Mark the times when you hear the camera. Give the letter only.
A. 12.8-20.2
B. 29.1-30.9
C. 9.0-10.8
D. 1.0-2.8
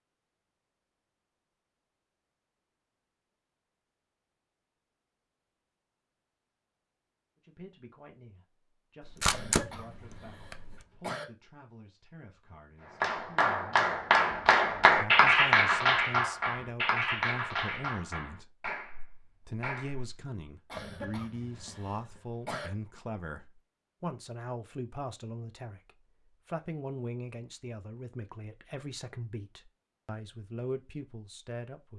C.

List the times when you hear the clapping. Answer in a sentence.
The clapping can be heard from 12.8 to 20.2 s.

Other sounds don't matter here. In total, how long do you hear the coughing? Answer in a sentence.
The coughing can be heard for 4 seconds in total.